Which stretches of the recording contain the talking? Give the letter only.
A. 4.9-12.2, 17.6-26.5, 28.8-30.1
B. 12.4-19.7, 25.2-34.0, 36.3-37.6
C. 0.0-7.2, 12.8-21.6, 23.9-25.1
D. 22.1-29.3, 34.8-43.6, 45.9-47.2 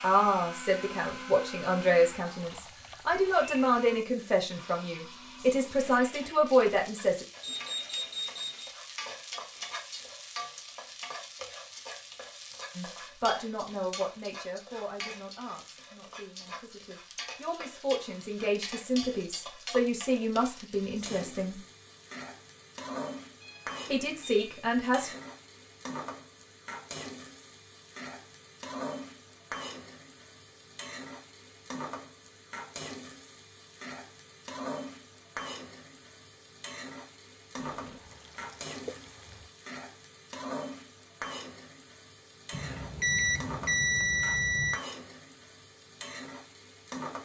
C.